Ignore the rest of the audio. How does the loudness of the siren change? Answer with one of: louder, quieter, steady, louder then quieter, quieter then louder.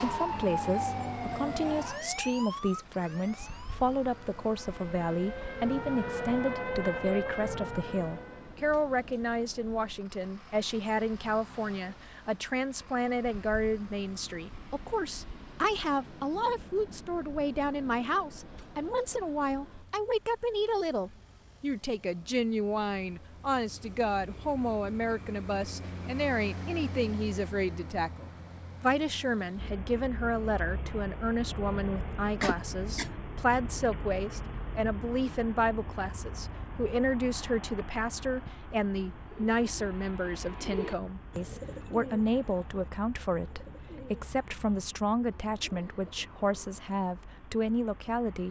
quieter then louder.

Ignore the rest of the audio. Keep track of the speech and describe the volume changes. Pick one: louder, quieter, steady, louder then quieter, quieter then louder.
steady.